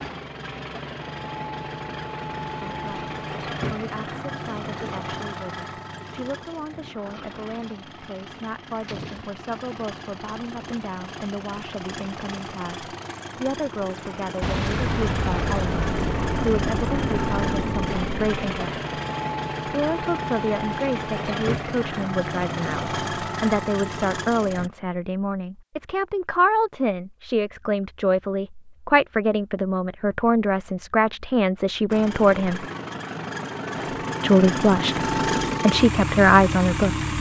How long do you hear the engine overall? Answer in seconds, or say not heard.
30 s.